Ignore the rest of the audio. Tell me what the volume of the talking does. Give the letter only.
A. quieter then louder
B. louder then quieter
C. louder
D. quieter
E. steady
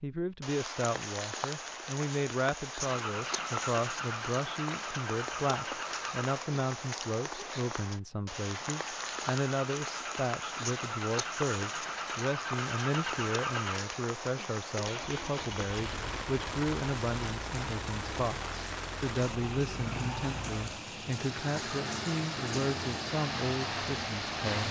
E.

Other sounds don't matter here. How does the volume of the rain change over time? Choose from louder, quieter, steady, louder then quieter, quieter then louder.
steady.